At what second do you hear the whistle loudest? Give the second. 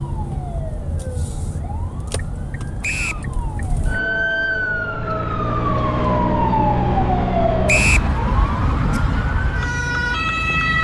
8 s.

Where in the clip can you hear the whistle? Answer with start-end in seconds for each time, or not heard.
2.8-3.2, 7.7-8.1.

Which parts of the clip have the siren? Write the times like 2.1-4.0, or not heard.
0.0-10.7.